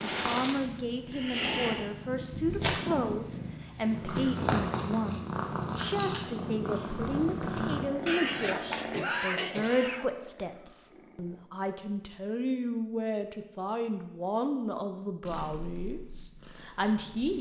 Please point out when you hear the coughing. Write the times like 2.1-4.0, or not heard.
8.1-10.1.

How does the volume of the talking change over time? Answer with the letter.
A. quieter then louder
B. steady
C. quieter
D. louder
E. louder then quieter
B.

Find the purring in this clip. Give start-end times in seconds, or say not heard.
0.0-11.4, 15.2-17.3.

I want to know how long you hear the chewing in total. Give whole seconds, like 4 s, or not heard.
not heard.